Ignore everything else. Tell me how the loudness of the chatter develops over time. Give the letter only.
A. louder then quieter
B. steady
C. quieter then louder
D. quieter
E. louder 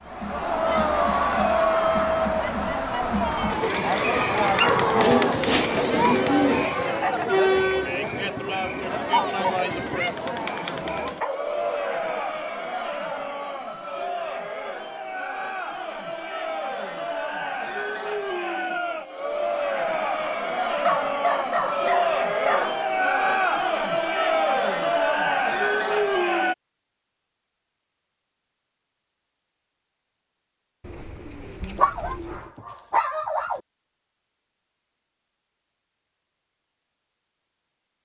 C.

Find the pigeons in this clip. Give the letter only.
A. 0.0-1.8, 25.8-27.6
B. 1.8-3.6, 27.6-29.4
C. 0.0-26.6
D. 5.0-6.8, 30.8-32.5
D.